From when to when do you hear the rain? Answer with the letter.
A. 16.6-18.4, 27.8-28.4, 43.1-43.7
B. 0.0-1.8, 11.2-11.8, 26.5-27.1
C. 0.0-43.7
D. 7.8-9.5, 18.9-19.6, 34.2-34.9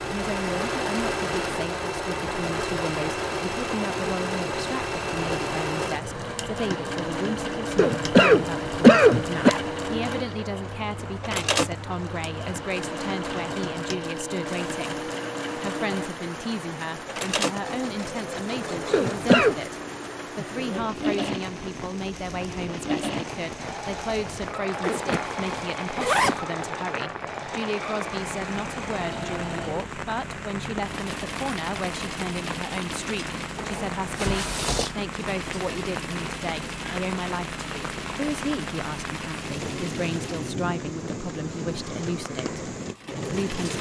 C.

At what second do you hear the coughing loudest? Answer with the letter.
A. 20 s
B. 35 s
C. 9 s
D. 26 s
C.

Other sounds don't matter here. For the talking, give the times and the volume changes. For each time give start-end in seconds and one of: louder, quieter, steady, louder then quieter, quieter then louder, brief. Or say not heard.
0.0-43.7 steady.